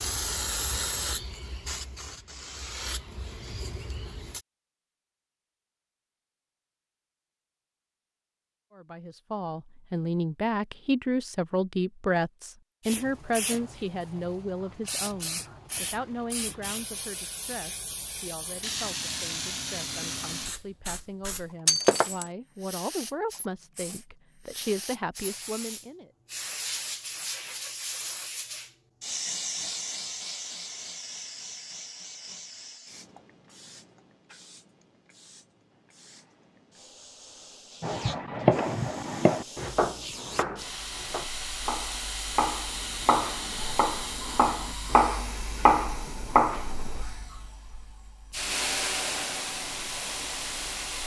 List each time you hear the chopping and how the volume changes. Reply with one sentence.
The chopping can be heard from 37.8 to 47.0 s, getting quieter then louder.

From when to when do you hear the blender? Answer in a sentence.
You can't hear the blender here.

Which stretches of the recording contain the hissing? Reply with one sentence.
You can hear the hissing from 0.0 to 4.4 s and from 12.8 to 51.0 s.